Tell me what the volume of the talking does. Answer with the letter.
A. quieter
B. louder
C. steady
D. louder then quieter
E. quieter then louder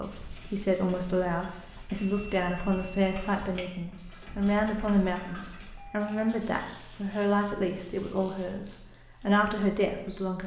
C.